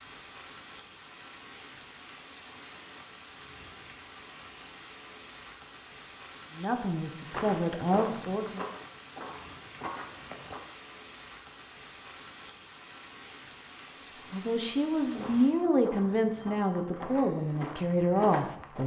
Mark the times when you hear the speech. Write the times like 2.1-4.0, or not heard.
6.5-8.7, 14.3-18.8.